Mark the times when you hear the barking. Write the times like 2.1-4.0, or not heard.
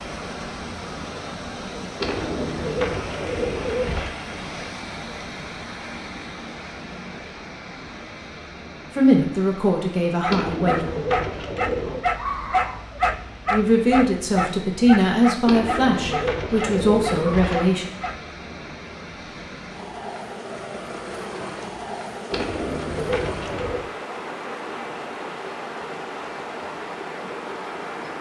10.2-18.2.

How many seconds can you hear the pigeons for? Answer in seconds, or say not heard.
8 s.